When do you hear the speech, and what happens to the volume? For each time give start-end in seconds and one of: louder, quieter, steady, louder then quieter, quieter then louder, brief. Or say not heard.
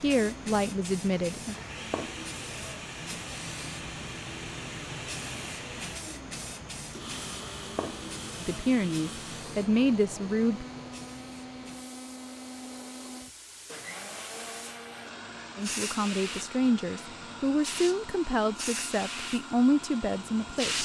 0.0-1.6 brief
8.4-10.7 brief
15.6-20.8 quieter then louder.